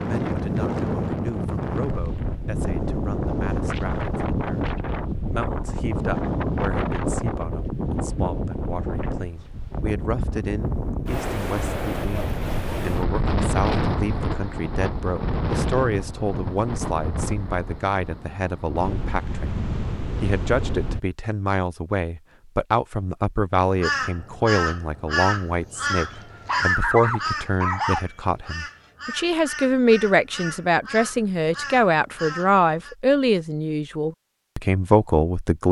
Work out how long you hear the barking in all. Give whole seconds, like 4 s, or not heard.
2 s.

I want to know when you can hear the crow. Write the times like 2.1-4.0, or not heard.
23.8-33.0.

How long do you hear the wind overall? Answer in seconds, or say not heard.
21 s.